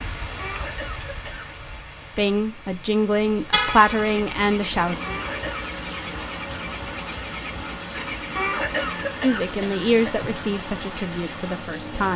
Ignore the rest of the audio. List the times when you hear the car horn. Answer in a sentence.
You can hear the car horn from 3.5 to 4.2 s.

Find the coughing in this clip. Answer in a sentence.
The coughing can be heard from 0.3 to 1.6 s, from 5.0 to 5.7 s and from 8.3 to 10.3 s.